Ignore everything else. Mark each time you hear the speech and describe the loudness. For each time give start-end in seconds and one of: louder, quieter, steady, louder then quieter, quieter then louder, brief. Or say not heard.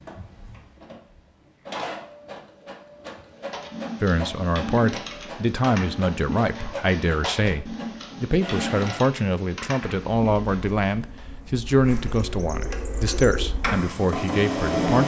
4.0-15.0 steady.